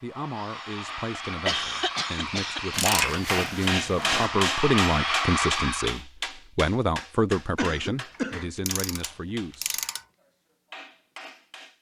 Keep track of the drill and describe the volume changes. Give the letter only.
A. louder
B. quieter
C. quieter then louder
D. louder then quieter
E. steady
A.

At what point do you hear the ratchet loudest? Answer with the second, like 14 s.
3 s.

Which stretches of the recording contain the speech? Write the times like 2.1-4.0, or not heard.
0.0-9.8.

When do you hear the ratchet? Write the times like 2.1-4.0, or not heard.
2.7-4.3, 8.2-10.0.